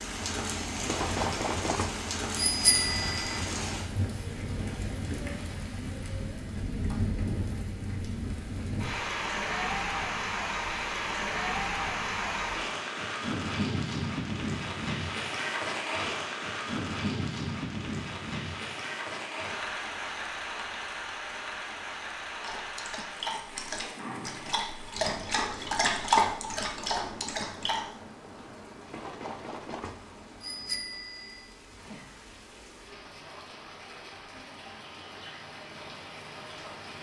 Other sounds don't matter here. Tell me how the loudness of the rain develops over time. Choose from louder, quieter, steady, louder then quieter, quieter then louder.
quieter.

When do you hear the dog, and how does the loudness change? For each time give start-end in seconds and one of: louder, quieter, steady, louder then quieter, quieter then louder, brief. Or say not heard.
22.4-27.9 louder then quieter.